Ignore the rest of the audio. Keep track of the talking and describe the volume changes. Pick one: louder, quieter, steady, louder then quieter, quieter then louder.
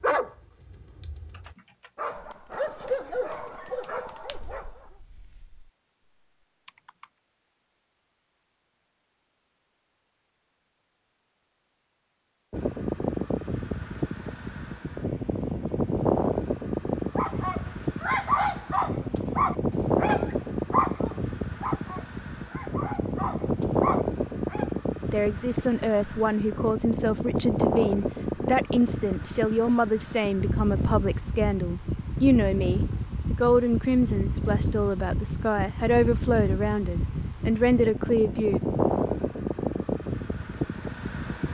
steady.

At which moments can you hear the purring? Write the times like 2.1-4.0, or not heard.
not heard.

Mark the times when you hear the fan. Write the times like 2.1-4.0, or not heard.
12.5-41.5.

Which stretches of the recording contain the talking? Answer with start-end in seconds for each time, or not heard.
25.1-38.6.